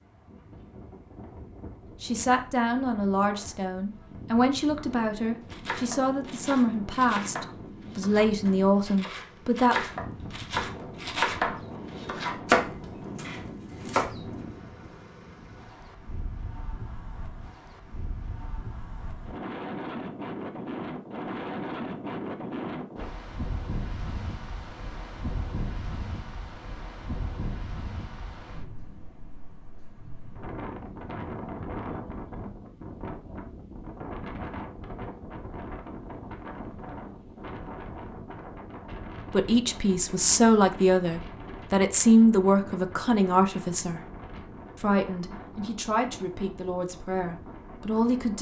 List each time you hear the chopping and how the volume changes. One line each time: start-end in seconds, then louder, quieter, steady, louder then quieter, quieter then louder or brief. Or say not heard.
5.5-14.2 quieter then louder.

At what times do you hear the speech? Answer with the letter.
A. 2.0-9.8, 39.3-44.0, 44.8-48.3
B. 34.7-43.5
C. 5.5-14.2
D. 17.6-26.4
A.